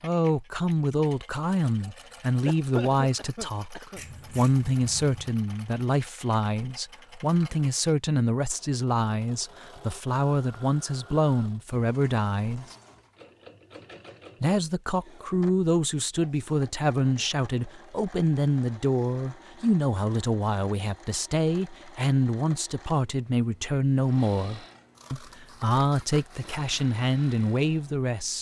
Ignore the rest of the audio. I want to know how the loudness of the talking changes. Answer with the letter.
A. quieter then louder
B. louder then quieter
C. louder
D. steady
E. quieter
D.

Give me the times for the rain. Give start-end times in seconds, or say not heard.
not heard.